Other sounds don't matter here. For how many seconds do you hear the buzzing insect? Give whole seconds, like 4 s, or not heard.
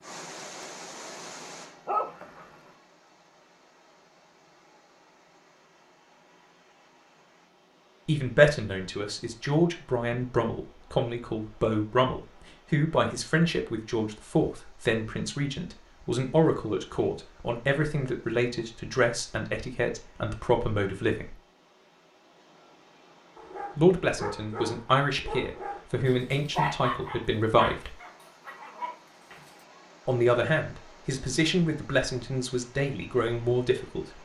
not heard.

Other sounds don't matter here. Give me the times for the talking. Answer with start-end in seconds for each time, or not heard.
8.1-21.4, 23.8-27.9, 30.1-34.1.